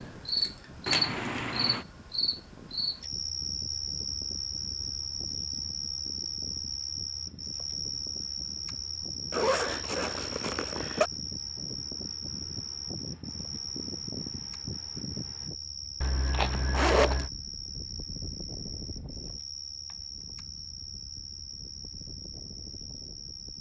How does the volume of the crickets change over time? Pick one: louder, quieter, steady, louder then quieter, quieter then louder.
quieter.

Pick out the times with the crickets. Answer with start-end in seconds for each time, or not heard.
0.0-23.5.